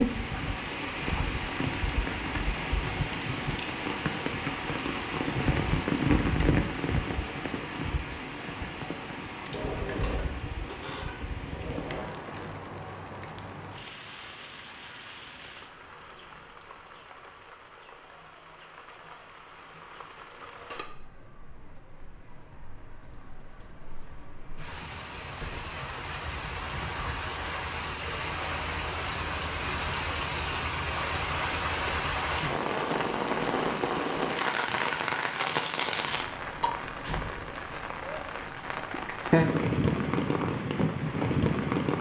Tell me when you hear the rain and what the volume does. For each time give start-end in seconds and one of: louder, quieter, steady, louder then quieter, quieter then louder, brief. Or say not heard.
0.0-41.9 quieter then louder.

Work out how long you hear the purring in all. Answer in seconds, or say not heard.
not heard.